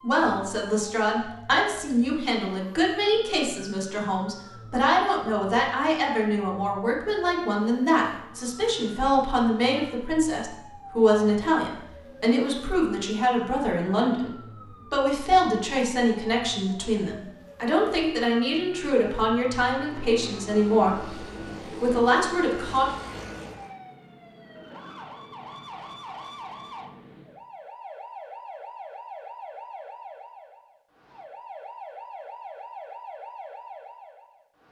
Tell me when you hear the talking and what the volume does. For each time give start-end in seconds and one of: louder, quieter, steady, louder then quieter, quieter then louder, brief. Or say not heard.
0.0-22.9 steady.